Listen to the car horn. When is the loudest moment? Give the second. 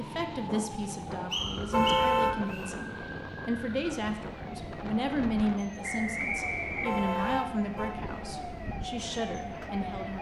2 s.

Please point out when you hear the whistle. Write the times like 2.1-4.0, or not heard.
1.3-2.7, 5.8-7.3.